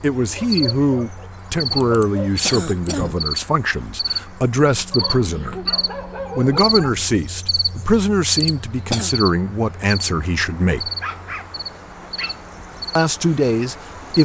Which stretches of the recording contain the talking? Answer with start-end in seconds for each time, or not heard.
0.0-5.5, 6.3-10.9, 12.9-14.2.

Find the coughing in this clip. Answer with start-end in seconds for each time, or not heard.
1.8-3.1, 8.2-9.1.